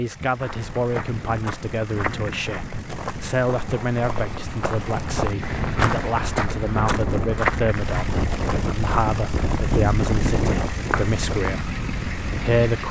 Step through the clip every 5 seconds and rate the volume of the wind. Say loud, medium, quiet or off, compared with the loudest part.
medium, loud, loud.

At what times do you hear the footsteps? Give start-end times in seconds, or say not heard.
0.4-11.6.